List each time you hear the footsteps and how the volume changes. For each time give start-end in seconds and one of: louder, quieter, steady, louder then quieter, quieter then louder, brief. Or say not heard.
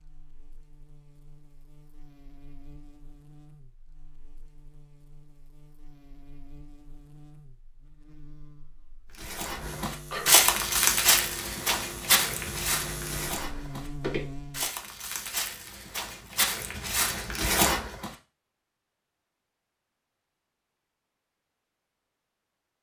9.2-18.1 quieter then louder.